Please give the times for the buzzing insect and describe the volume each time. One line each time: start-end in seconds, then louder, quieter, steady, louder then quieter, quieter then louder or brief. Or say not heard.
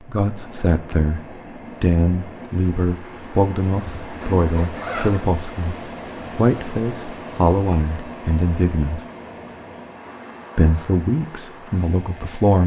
not heard.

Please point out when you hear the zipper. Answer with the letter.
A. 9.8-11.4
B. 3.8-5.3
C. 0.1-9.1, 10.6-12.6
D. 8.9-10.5
B.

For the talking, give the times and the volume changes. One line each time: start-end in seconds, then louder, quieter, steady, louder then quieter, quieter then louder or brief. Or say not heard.
0.1-9.1 steady
10.6-12.6 brief.